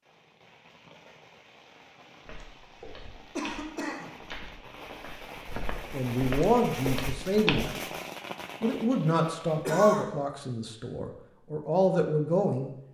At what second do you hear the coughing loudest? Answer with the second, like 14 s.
10 s.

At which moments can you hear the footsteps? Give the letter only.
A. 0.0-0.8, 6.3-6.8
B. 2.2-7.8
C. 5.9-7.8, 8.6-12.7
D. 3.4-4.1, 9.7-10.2
B.